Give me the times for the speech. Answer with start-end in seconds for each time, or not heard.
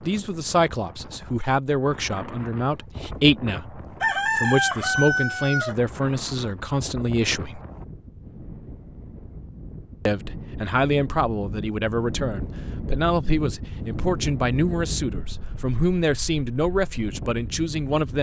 0.0-7.6, 10.1-18.1.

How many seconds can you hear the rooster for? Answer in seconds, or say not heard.
2 s.